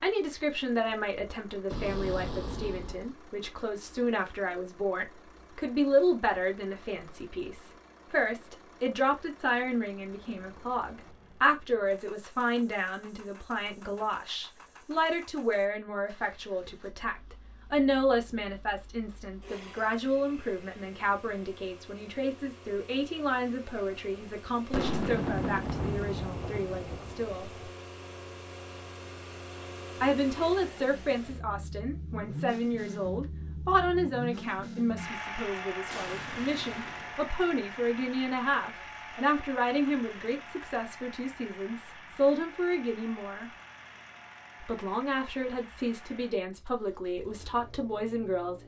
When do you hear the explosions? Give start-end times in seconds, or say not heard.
1.7-3.1, 24.7-27.7, 35.9-37.1.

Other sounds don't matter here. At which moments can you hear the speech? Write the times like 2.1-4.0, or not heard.
0.0-27.5, 30.0-43.5, 44.6-48.6.